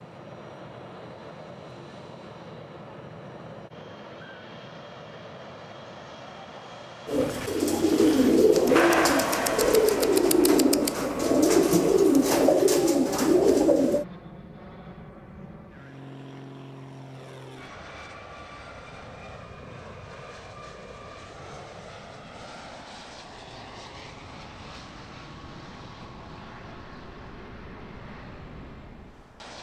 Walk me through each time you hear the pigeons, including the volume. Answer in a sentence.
You can hear the pigeons from 7.0 to 14.1 s, at a steady volume.